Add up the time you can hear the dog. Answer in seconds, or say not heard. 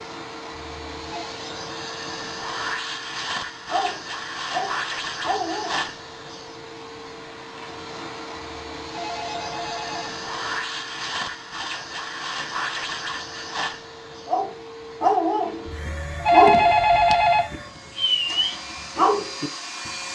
8 s.